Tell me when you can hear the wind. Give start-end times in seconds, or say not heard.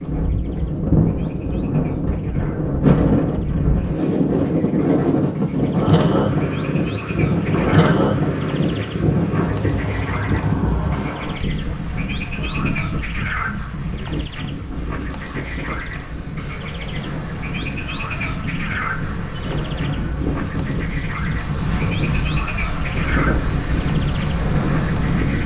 0.0-25.4.